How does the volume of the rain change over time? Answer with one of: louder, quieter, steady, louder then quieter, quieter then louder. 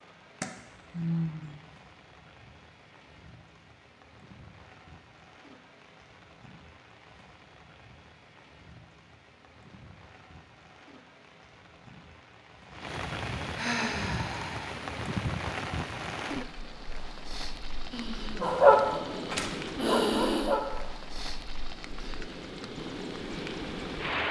louder.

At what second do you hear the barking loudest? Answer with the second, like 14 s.
19 s.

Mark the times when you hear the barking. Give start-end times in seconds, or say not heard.
18.4-20.8.